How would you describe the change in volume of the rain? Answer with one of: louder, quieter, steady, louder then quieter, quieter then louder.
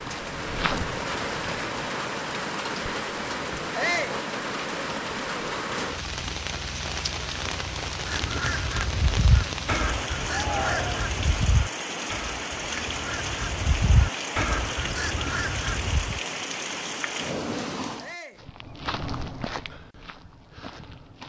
steady.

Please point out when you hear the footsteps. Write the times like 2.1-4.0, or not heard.
0.0-1.9, 18.3-21.2.